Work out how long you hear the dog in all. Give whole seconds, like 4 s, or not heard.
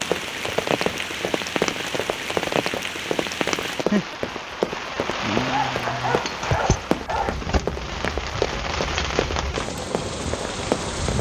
2 s.